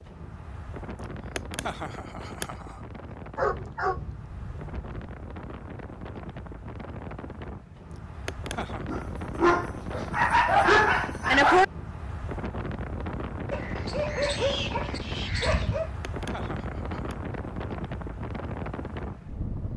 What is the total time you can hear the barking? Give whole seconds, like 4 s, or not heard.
7 s.